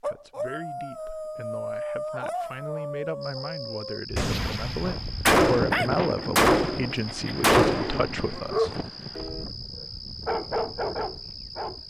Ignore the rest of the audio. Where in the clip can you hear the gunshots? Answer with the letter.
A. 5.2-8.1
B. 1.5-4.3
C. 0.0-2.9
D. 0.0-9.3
A.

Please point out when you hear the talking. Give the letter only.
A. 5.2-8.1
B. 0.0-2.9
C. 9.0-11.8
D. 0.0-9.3
D.